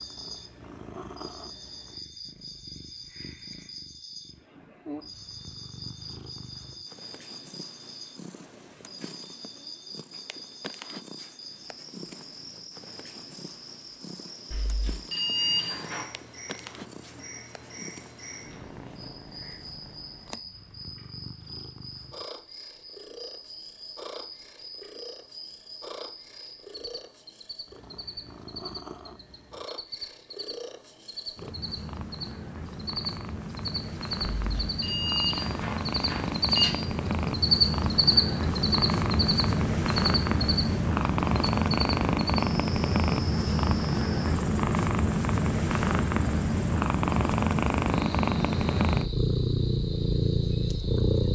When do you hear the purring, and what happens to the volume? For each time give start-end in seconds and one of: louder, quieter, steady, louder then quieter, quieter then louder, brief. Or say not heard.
0.0-51.2 louder.